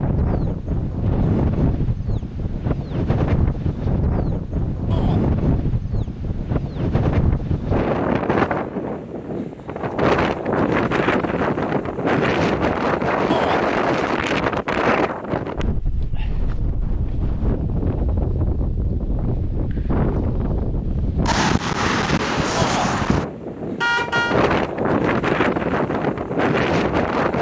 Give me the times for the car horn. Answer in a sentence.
You can hear the car horn from 23.8 to 24.4 s.